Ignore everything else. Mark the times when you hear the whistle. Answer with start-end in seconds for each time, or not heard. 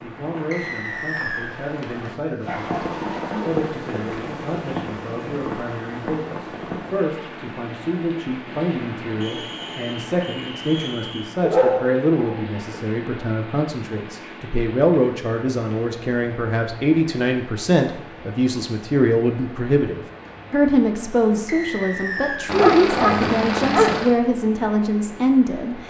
0.5-1.6, 9.2-11.2, 21.4-22.5.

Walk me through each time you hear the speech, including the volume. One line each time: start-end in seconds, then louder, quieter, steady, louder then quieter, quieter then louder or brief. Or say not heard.
0.0-25.8 louder.